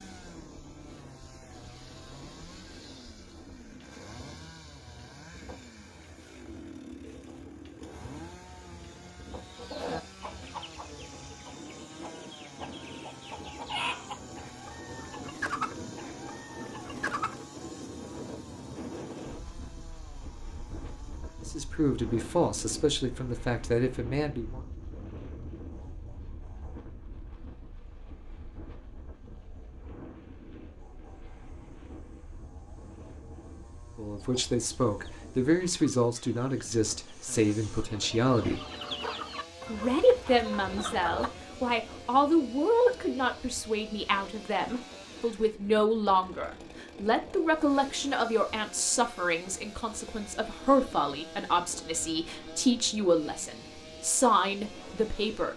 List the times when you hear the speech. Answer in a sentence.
You can hear the speech from 21.4 to 24.6 s, from 34.0 to 38.6 s and from 39.6 to 55.5 s.